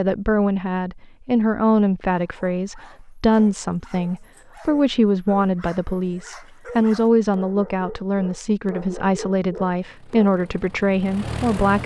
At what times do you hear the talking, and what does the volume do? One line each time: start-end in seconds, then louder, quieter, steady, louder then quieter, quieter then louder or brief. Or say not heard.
0.0-11.8 steady.